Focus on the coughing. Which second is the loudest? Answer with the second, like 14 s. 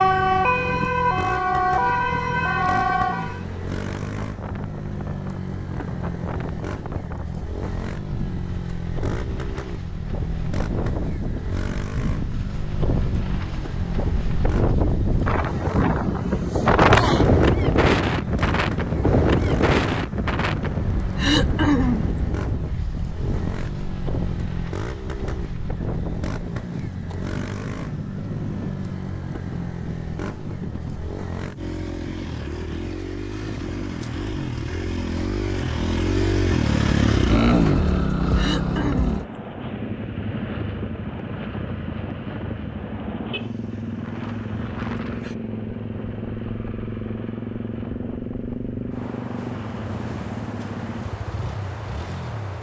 22 s.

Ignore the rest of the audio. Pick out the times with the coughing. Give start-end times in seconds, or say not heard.
21.1-22.1, 38.4-39.2.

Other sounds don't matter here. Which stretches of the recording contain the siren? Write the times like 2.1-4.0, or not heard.
0.0-3.4.